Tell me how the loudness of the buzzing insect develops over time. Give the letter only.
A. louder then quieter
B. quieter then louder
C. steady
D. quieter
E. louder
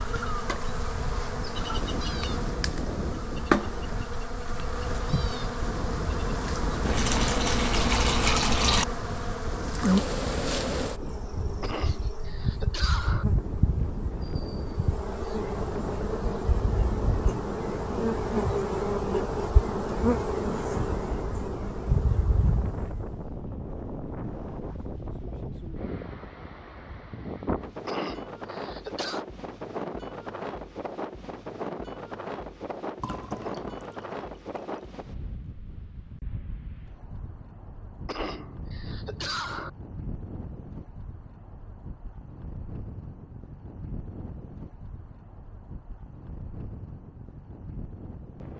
C.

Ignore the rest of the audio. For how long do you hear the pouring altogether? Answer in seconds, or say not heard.
4 s.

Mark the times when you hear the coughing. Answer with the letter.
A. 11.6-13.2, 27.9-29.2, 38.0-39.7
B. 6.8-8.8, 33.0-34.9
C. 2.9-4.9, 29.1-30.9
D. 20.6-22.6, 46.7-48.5
A.